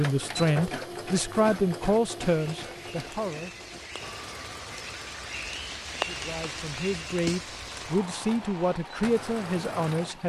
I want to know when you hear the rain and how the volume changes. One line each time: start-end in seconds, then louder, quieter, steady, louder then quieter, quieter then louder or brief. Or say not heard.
2.2-10.2 louder then quieter.